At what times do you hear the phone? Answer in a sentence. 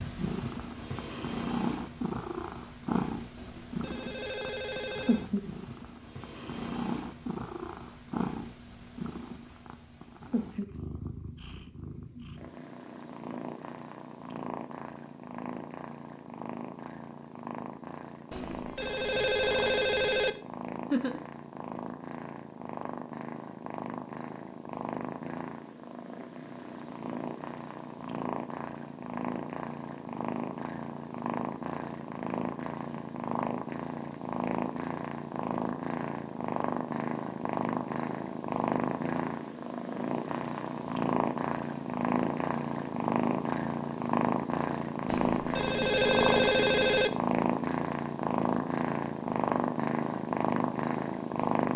You can hear the phone from 3.4 to 5.3 s, from 18.3 to 20.4 s and from 45.0 to 47.1 s.